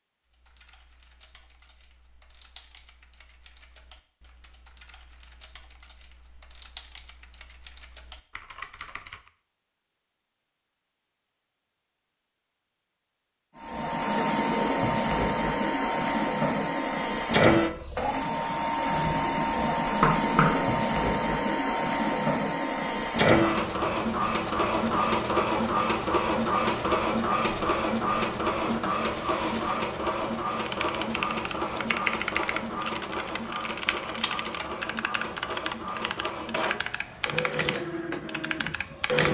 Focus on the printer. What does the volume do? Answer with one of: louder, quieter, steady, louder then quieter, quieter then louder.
quieter.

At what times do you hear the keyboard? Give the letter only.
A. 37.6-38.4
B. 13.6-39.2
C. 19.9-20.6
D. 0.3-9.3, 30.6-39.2
D.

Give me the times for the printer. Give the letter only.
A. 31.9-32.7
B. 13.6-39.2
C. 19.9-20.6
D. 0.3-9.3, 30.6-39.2
B.